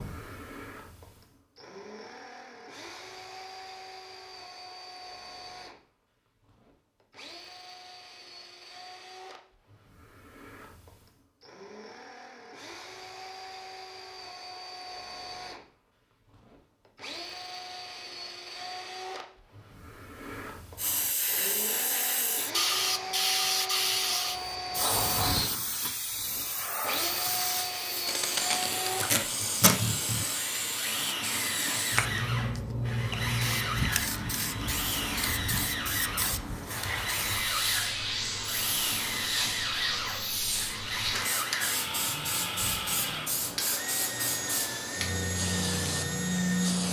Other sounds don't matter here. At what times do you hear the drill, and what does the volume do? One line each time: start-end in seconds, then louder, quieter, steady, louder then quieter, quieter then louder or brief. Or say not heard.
0.0-46.8 louder.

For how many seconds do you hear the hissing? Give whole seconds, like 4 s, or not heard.
26 s.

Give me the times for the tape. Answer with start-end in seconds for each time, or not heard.
28.6-29.8.